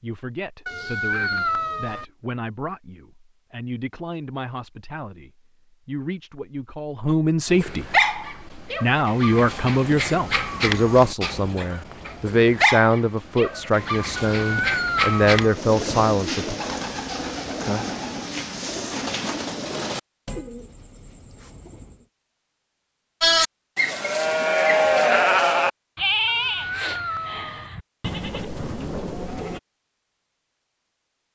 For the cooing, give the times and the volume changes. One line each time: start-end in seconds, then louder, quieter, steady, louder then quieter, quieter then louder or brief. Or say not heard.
15.4-22.1 quieter.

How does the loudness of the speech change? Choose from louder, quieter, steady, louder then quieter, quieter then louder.
louder.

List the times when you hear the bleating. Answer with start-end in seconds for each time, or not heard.
23.2-29.6.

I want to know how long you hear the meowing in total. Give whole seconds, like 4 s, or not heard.
4 s.